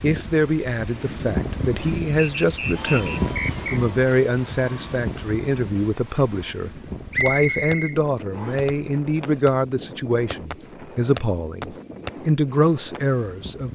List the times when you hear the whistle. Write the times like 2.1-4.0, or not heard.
2.4-3.8, 7.1-8.8.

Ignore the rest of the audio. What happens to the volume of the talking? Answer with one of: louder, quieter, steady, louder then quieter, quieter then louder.
steady.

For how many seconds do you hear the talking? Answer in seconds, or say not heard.
14 s.